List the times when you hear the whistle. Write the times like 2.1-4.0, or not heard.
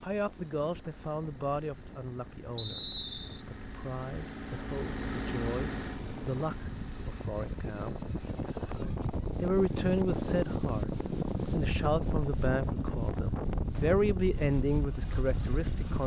2.5-3.5.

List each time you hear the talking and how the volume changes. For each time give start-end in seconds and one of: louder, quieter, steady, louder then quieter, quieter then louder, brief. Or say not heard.
0.0-2.9 brief
3.5-16.0 louder.